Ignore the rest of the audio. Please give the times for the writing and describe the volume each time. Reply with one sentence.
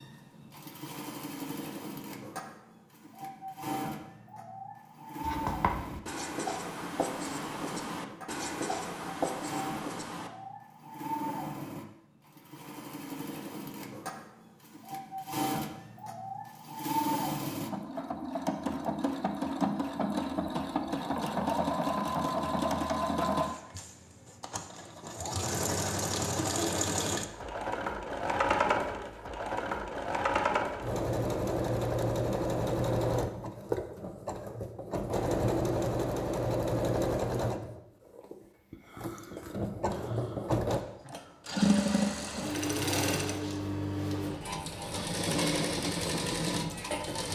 The writing can be heard from 5.2 to 10.3 s, at a steady volume.